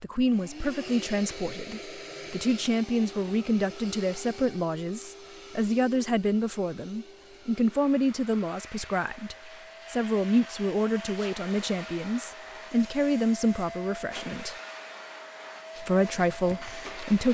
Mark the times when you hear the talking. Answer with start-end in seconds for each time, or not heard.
0.0-14.6, 15.8-17.2.